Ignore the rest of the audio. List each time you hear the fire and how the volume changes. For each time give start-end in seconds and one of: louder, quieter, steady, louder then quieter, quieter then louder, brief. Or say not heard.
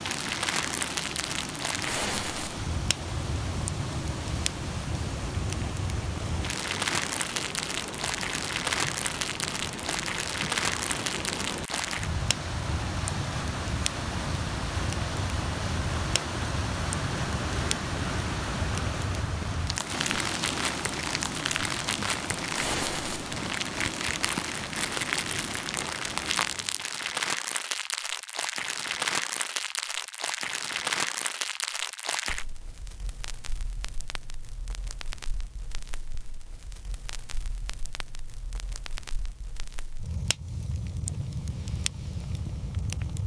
0.0-43.2 quieter.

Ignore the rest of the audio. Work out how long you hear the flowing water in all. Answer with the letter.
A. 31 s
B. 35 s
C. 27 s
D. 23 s
C.